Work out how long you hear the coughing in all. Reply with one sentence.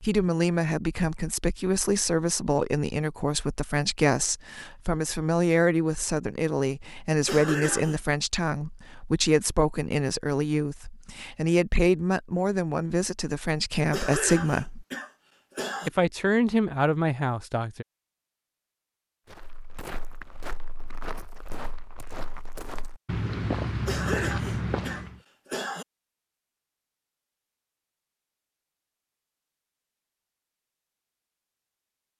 The coughing can be heard for 5 seconds in total.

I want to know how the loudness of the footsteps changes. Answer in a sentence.
The loudness of the footsteps goes up.